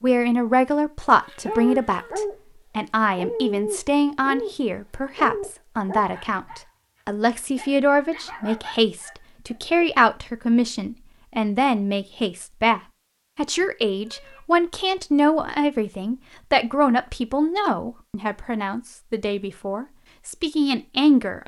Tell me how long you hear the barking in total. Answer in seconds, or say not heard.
7 s.